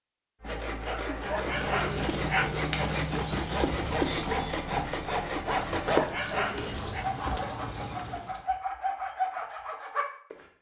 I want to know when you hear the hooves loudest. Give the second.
3 s.